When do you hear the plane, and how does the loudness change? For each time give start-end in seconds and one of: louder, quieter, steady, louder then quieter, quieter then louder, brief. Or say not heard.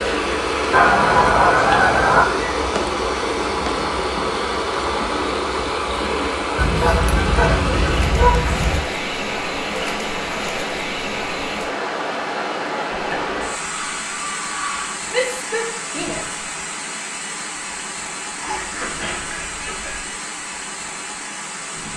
not heard.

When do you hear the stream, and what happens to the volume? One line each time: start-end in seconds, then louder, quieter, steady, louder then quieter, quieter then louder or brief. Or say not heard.
0.0-21.9 quieter.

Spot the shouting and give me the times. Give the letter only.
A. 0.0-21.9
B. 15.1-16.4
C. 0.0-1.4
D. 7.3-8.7
B.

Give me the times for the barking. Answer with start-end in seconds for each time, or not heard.
not heard.